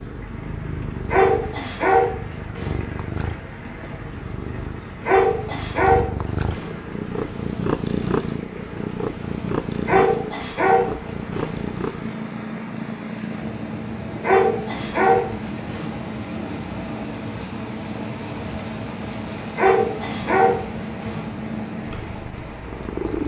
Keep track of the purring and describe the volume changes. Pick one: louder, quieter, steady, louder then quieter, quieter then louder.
louder then quieter.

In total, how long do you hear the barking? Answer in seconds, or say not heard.
9 s.